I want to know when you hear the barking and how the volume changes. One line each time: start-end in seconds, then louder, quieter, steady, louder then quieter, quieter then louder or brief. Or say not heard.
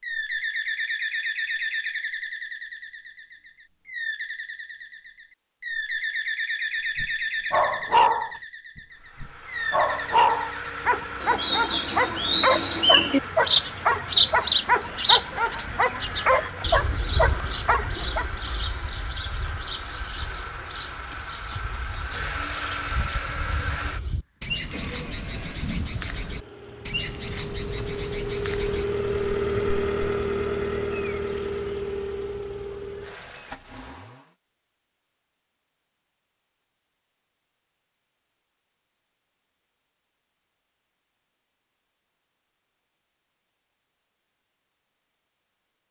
7.0-8.4 brief
9.2-18.2 steady.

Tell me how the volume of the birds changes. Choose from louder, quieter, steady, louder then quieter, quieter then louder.
louder then quieter.